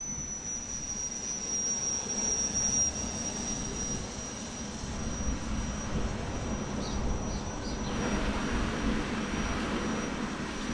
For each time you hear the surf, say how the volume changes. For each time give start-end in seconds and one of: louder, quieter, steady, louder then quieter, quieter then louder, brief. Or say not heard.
0.0-10.6 louder.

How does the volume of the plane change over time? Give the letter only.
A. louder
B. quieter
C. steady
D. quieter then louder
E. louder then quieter
B.